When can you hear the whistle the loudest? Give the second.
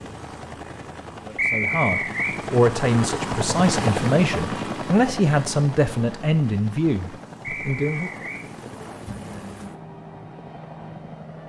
2 s.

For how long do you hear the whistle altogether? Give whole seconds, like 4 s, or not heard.
2 s.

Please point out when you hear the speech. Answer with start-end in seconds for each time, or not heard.
1.2-8.2.